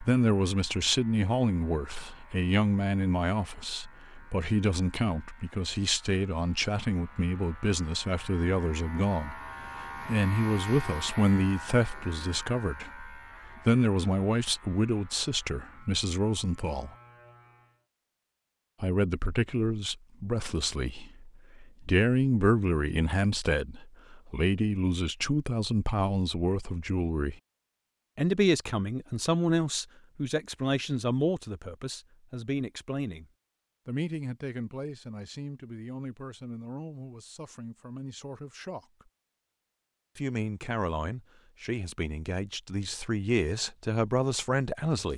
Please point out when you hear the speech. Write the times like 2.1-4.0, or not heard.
0.0-16.9, 18.8-27.4, 28.1-33.2, 33.9-39.1, 40.1-45.1.